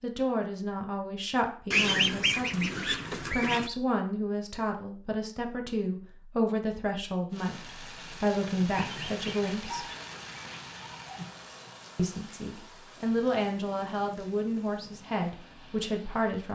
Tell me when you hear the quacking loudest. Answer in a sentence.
The loudest moment of the quacking is at 2 seconds.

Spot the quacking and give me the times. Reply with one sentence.
You can hear the quacking from 1.7 to 3.7 s and from 8.7 to 10.7 s.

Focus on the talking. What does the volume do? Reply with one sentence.
The volume of the talking stays about the same.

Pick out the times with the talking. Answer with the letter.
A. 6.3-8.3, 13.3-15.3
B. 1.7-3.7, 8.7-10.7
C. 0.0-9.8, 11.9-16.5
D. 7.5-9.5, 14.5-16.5
C.